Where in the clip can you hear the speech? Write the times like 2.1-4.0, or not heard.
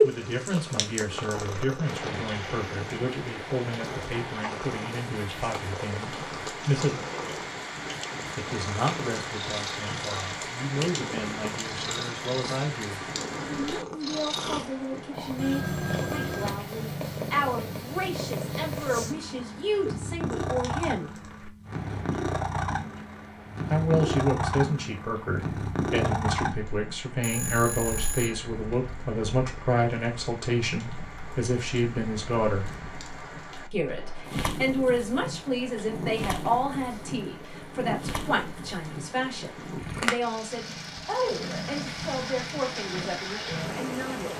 0.0-7.0, 8.3-21.1, 23.6-32.7, 33.7-44.3.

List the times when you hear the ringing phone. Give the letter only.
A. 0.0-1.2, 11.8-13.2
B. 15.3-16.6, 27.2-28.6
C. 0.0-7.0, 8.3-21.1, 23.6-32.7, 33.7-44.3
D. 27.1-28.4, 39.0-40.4
B.